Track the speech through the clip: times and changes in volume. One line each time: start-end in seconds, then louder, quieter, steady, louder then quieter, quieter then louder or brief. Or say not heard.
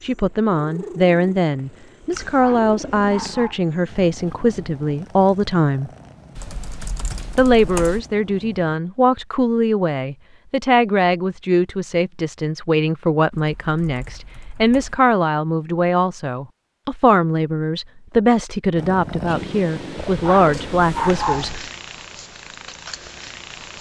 0.0-5.9 steady
7.3-21.6 steady.